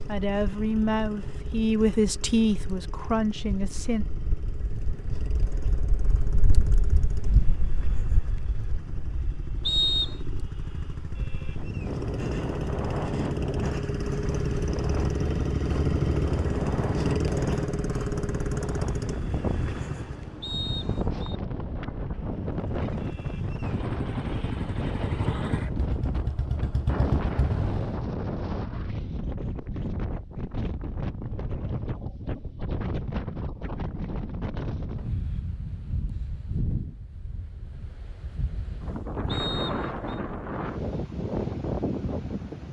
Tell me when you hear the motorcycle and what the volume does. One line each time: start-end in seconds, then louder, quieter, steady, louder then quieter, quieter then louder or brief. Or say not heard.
0.0-20.4 louder
22.4-28.1 louder.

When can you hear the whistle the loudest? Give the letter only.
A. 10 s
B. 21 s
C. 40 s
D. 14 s
A.